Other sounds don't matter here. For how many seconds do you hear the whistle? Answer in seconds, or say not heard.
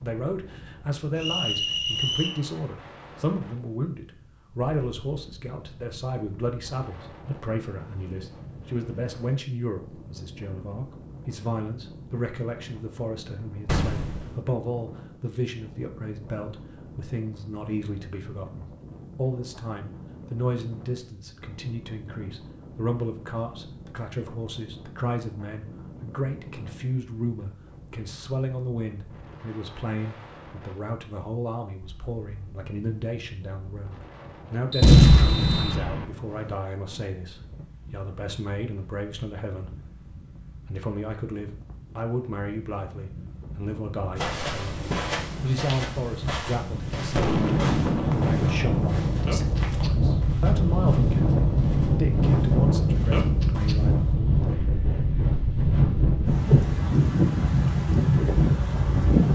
2 s.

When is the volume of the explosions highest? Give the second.
35 s.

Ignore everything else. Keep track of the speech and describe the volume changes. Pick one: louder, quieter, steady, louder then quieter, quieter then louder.
steady.